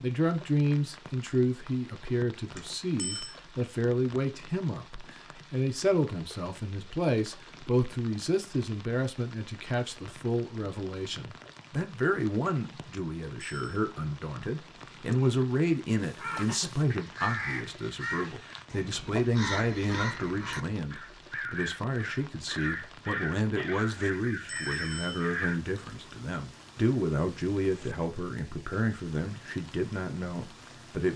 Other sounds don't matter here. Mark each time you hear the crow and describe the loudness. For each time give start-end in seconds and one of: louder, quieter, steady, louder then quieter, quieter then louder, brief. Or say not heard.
15.9-25.6 steady.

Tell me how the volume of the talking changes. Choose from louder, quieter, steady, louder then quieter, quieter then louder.
steady.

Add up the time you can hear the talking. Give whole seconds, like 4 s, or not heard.
31 s.